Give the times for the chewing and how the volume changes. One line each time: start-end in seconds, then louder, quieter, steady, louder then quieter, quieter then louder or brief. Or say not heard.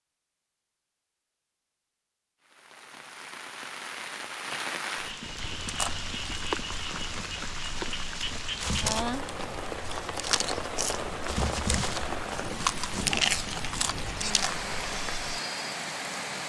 5.4-15.3 louder.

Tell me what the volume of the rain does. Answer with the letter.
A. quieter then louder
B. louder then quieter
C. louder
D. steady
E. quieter
D.